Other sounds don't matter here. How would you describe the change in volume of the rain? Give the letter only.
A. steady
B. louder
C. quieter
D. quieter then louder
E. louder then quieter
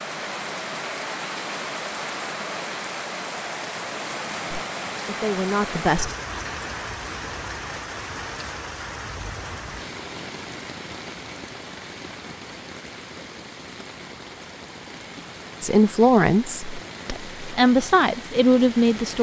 C.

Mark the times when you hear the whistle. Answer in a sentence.
You can't hear the whistle here.